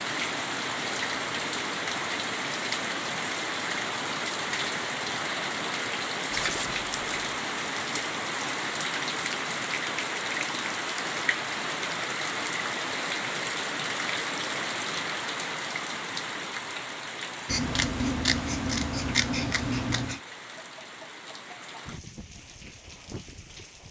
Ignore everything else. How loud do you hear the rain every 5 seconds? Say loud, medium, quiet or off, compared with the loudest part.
loud, loud, loud, medium, quiet.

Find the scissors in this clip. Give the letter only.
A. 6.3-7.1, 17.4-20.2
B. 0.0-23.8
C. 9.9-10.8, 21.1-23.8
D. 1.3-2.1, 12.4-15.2
A.